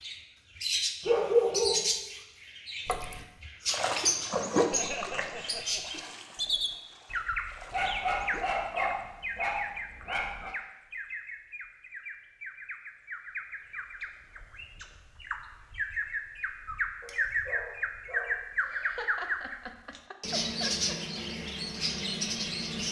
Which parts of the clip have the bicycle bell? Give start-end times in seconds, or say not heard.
not heard.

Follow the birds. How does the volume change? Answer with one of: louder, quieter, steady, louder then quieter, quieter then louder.
quieter then louder.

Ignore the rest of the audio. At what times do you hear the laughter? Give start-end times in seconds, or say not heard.
4.7-6.0, 18.6-20.9.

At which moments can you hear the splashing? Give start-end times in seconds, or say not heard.
2.9-8.6.